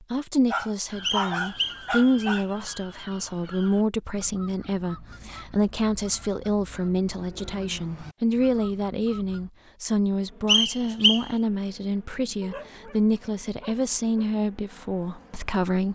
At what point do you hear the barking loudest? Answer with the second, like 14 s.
1 s.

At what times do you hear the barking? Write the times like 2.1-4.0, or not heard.
0.5-2.5, 12.4-14.3.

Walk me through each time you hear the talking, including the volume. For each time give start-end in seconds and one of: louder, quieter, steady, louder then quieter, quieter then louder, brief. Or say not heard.
0.1-15.9 steady.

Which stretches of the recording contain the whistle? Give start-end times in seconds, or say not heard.
1.0-2.5, 10.4-11.2.